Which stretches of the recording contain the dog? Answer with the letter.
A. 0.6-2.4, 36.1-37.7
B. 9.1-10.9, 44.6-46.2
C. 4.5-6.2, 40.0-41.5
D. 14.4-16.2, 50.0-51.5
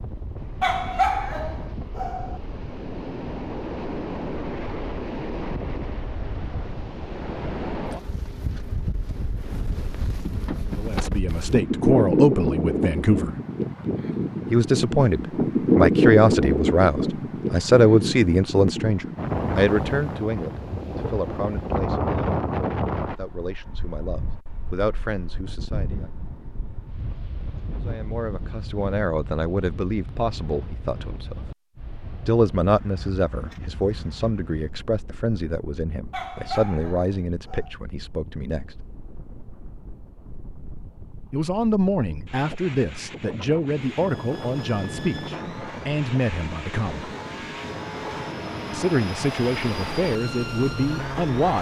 A.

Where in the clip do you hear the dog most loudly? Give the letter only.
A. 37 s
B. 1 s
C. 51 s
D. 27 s
B.